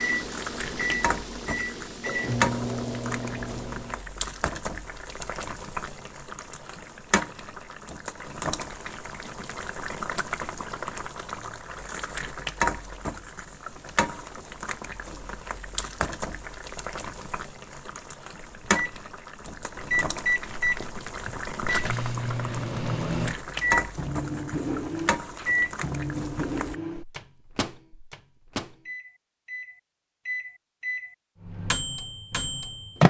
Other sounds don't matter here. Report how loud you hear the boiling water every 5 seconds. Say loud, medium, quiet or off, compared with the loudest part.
loud, loud, loud, loud, loud, loud, off.